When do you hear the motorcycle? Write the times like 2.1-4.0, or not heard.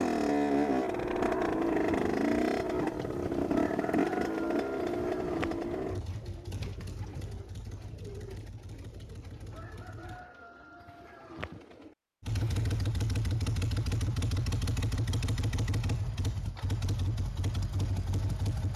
0.0-10.2, 12.2-18.7.